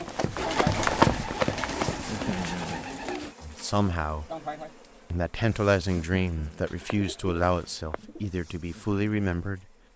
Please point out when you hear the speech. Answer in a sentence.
The speech can be heard from 3.4 to 4.3 s and from 5.1 to 9.7 s.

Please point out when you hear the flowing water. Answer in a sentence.
The flowing water can't be heard in this clip.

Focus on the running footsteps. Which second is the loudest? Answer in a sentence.
The loudest moment of the running footsteps is at 1 second.